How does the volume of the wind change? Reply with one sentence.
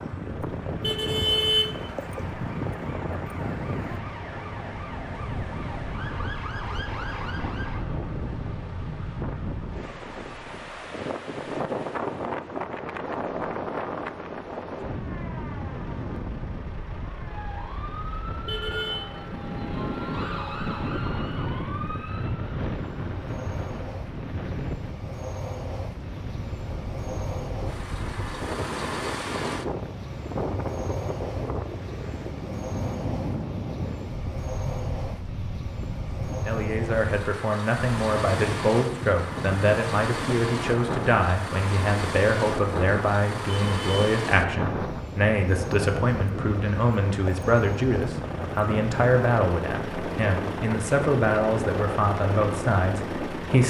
The loudness of the wind stays about the same.